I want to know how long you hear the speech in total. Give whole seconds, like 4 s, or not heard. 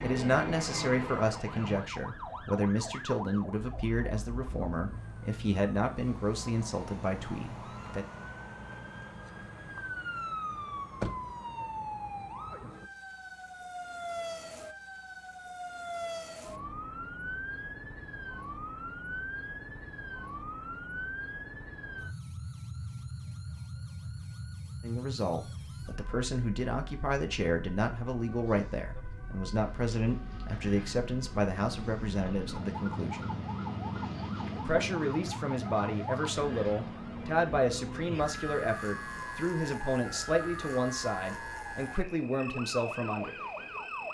25 s.